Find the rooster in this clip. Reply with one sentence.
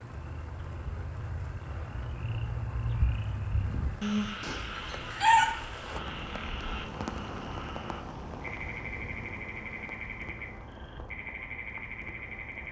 The rooster can be heard from 4.4 to 5.5 s.